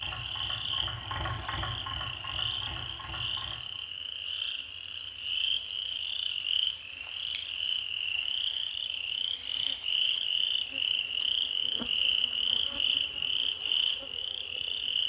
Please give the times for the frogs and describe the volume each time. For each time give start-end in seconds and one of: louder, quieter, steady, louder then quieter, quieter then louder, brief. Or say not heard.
0.0-15.0 louder.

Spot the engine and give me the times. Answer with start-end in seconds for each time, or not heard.
0.0-3.9.